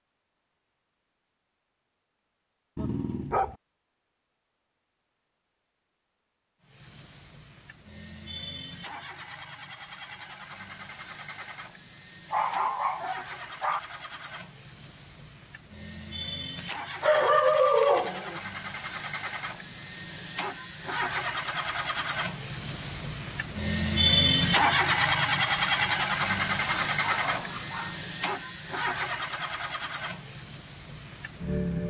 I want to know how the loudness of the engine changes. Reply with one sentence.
The volume of the engine goes up, then down.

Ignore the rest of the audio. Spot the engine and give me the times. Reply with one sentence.
The engine can be heard from 6.6 to 31.8 s.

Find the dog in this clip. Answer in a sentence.
You can hear the dog from 2.8 to 3.5 s, from 12.3 to 13.8 s, from 16.6 to 18.4 s and from 26.6 to 28.0 s.